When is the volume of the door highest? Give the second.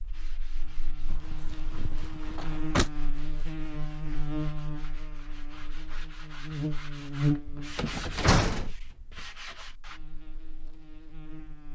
8 s.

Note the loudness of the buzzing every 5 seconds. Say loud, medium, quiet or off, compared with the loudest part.
medium, loud, quiet.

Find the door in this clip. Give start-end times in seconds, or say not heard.
1.1-2.9, 7.8-8.7.